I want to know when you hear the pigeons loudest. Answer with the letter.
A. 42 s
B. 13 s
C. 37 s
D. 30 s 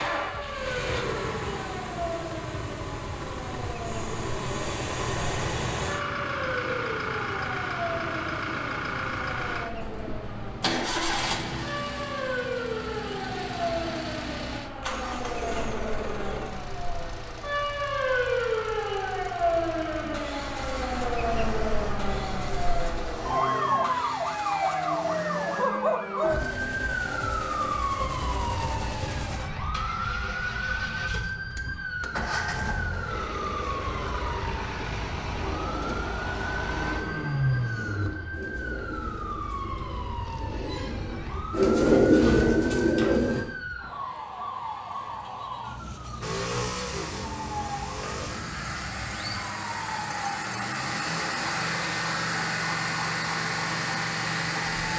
A.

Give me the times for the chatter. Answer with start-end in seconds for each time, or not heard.
not heard.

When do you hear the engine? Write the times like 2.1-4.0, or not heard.
0.0-41.7, 46.2-54.9.